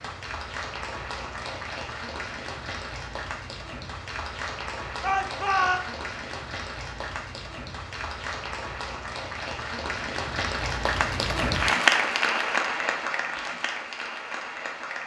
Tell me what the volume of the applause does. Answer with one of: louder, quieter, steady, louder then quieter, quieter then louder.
louder.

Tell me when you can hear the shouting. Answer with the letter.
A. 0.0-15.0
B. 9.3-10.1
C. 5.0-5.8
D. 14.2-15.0
C.